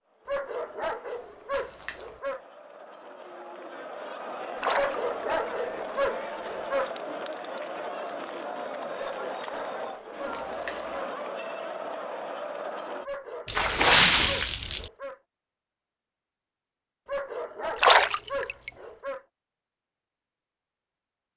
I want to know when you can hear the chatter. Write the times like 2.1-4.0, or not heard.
0.0-13.1.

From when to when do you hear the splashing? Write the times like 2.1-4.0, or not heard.
1.5-2.1, 4.5-5.3, 10.3-10.9, 13.4-14.9, 17.8-18.7.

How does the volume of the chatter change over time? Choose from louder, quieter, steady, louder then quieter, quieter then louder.
louder.